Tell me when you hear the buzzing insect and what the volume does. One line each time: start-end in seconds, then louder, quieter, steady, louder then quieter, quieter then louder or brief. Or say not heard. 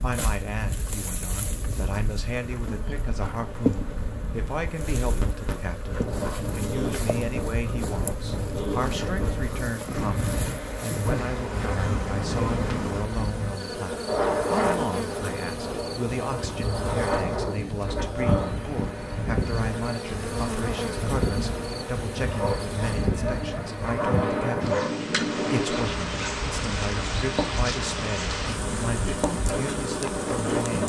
0.0-30.8 steady.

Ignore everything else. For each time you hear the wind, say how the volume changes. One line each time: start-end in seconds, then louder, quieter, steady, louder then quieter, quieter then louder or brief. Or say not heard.
0.0-30.8 louder.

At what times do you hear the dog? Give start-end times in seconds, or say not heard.
22.2-24.9.